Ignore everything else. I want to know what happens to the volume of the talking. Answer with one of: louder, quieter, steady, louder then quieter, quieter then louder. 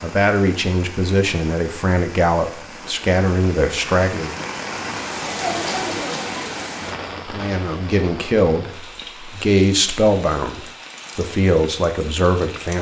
steady.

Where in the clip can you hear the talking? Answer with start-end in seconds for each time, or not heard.
0.0-4.5, 7.2-12.7.